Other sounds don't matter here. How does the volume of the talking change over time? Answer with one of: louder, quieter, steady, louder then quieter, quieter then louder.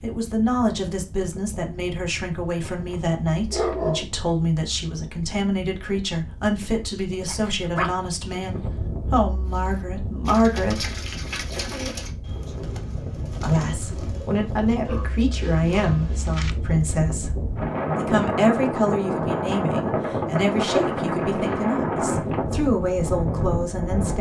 steady.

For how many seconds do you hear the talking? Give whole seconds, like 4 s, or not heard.
22 s.